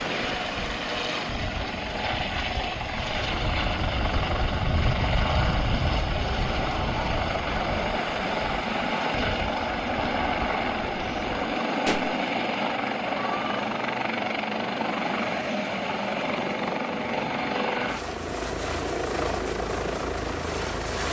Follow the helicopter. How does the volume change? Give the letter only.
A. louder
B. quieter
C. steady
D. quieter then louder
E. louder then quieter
C.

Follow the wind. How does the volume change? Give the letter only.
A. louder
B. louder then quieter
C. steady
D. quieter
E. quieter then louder
B.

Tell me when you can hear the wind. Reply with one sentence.
You can hear the wind from 0.0 to 11.3 s.